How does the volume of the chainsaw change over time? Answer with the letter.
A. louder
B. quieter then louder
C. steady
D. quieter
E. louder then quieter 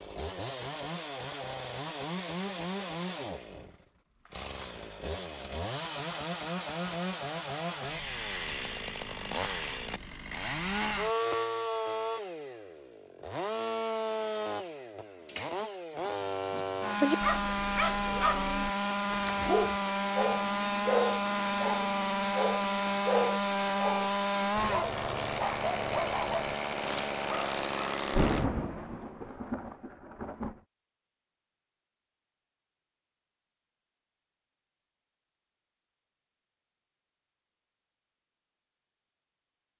A.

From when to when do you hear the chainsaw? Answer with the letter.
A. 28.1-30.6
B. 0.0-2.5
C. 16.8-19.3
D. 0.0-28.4
D.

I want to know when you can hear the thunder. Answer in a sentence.
You can hear the thunder from 28.1 to 30.6 s.